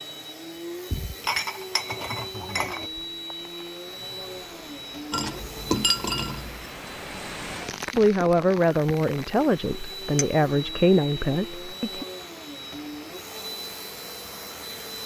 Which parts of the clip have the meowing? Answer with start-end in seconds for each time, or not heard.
not heard.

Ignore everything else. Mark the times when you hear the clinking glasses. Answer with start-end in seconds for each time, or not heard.
0.9-2.9, 5.1-6.7.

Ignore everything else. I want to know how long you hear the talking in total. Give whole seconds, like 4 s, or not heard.
4 s.